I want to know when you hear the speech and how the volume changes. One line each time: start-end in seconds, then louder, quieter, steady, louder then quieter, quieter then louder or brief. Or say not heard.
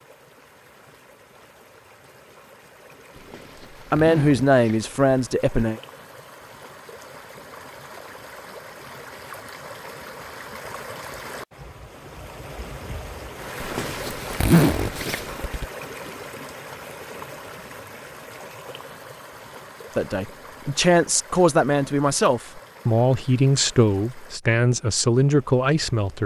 3.9-5.8 brief
19.9-26.2 steady.